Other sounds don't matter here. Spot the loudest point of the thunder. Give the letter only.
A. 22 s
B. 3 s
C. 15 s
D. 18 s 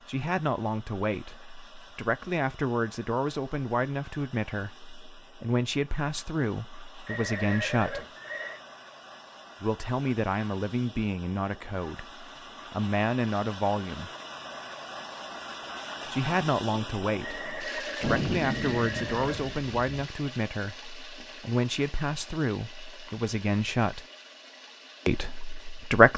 D.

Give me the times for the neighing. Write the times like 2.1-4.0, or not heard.
7.0-8.6, 17.2-19.6.